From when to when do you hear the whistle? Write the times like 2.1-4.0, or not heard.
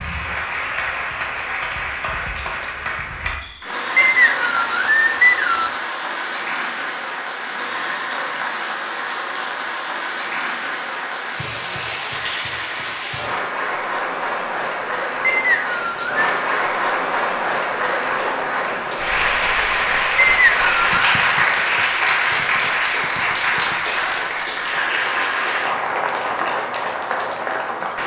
4.0-5.8, 15.2-16.3, 20.1-21.0.